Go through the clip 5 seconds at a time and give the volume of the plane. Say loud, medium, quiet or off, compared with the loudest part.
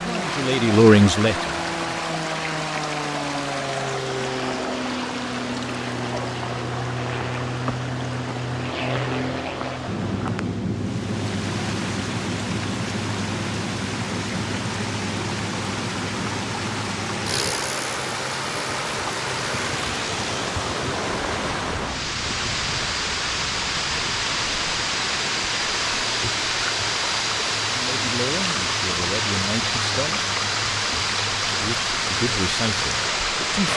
loud, loud, loud, loud, medium, medium, medium.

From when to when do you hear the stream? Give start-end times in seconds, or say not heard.
0.0-33.7.